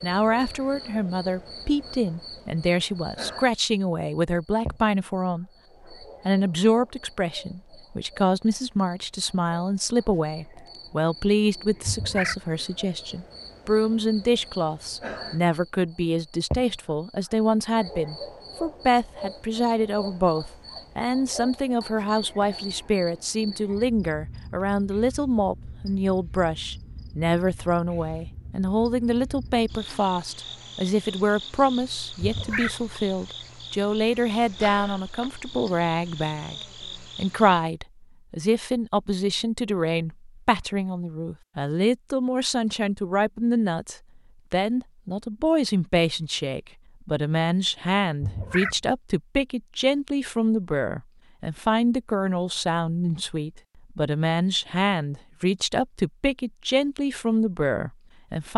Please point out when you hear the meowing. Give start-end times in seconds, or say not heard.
11.8-12.4, 32.2-32.8, 48.2-48.8.